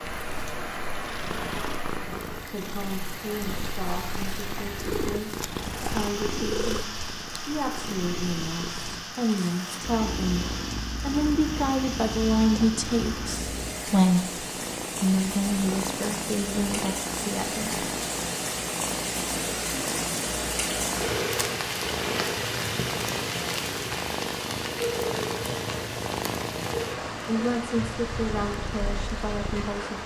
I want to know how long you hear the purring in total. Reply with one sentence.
You can hear the purring for 30 seconds altogether.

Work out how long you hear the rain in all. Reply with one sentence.
The rain can be heard for 30 seconds in total.